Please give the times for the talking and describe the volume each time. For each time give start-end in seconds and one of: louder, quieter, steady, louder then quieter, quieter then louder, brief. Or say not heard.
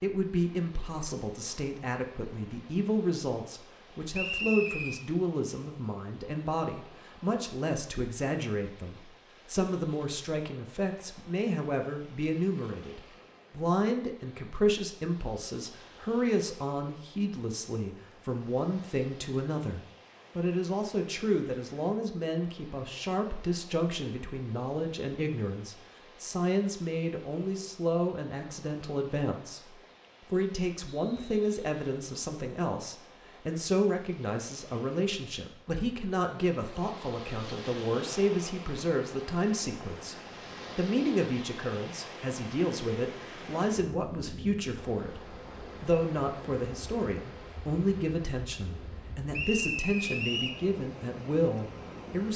0.0-52.3 steady.